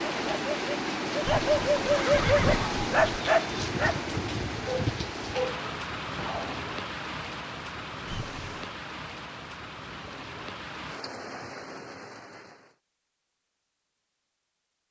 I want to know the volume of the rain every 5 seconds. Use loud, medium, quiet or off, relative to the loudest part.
loud, medium, medium.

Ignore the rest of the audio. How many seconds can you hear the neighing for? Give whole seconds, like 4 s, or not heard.
3 s.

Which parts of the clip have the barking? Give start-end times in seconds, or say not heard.
0.0-6.7.